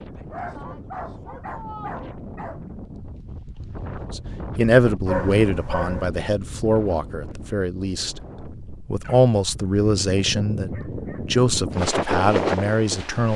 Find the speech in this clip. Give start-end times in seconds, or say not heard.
4.1-13.3.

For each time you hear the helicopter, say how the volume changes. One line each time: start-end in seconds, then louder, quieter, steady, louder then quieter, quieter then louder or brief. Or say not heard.
not heard.